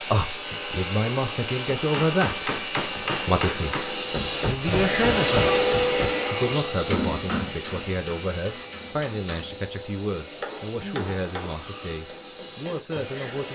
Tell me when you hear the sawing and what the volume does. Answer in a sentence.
The sawing can be heard from 0.0 to 8.9 s, getting quieter.